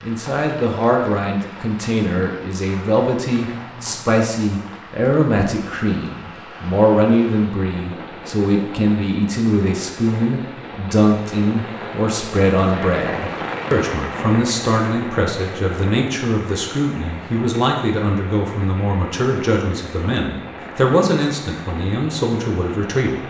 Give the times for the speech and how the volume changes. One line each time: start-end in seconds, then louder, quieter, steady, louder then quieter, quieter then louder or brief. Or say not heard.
0.0-23.2 steady.